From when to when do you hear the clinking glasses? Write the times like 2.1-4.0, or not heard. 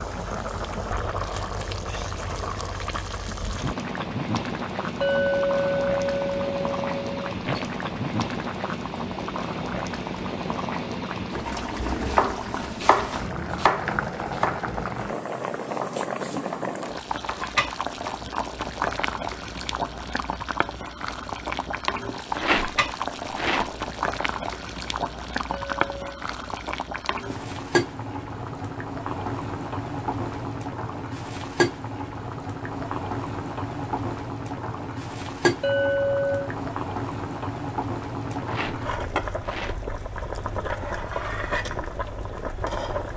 5.0-7.3, 25.5-26.1, 35.6-36.5.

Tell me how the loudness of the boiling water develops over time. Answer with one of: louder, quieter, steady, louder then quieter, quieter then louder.
steady.